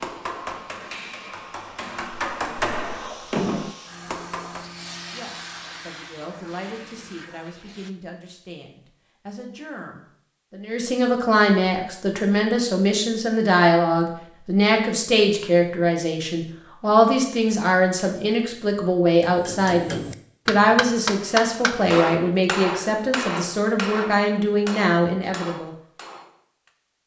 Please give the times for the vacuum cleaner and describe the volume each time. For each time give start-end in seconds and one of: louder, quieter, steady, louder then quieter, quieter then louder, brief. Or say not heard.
0.0-8.0 louder then quieter.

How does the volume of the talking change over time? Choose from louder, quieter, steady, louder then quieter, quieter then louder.
louder.